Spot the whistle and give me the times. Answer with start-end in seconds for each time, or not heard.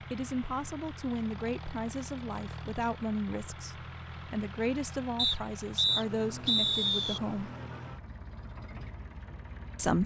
5.2-7.2.